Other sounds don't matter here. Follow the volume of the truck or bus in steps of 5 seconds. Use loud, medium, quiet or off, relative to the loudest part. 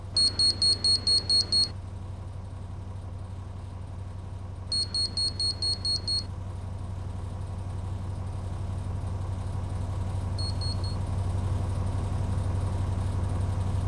medium, medium, loud.